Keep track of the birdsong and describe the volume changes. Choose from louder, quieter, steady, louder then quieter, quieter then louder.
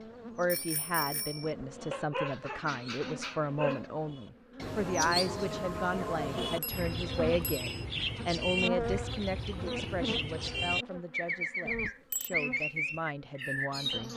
louder.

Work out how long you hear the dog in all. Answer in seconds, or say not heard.
2 s.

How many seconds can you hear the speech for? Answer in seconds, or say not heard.
14 s.